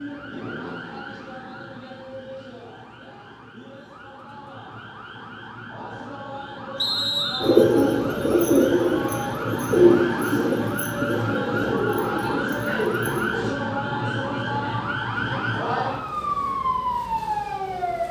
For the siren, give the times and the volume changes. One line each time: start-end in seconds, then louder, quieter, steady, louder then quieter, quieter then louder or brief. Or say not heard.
0.0-18.0 louder.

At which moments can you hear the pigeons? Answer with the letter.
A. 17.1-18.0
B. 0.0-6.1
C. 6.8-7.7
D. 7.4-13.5
D.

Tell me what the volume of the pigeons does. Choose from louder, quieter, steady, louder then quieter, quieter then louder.
quieter.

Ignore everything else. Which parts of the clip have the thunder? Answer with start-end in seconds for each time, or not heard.
not heard.